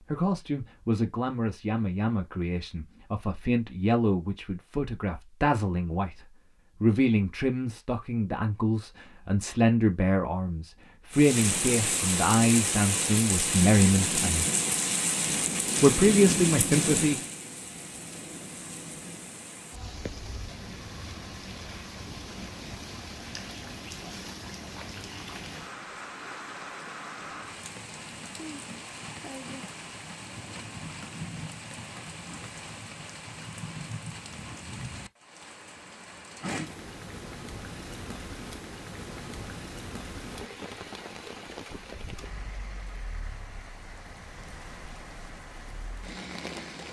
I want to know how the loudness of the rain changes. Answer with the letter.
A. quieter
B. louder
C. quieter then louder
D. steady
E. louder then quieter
A.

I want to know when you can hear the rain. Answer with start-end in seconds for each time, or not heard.
11.1-46.8.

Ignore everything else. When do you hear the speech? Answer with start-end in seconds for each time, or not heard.
0.0-14.4, 15.8-17.2.